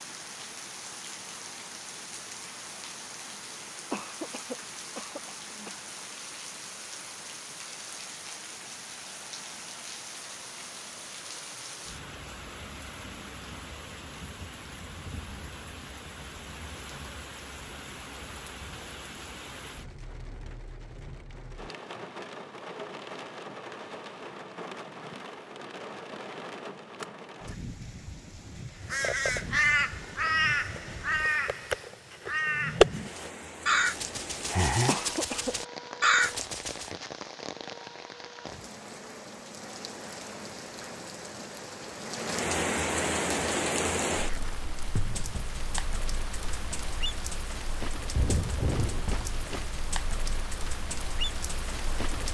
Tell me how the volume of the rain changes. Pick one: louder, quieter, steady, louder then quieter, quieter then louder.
louder.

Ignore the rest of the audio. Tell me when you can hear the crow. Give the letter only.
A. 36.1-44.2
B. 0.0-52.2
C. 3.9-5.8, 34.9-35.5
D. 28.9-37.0
D.